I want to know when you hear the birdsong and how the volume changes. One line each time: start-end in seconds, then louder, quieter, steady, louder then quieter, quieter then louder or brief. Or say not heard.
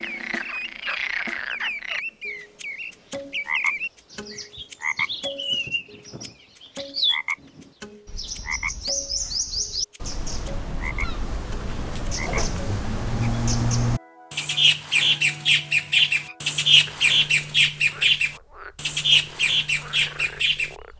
0.0-20.8 louder.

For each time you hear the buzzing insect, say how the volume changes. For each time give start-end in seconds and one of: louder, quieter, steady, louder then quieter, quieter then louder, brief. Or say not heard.
not heard.